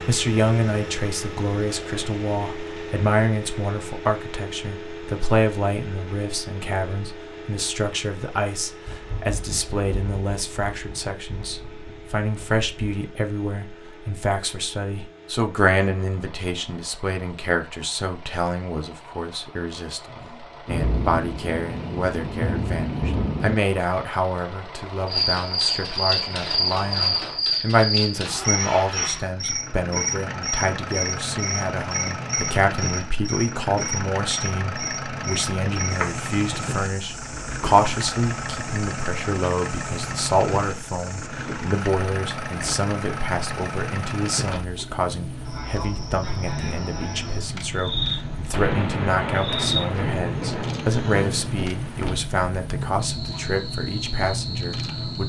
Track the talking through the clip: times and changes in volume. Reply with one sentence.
The talking can be heard from 0.1 to 55.2 s, at a steady volume.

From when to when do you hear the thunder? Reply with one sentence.
The thunder can be heard from 8.8 to 12.9 s, from 20.6 to 23.6 s and from 48.5 to 52.1 s.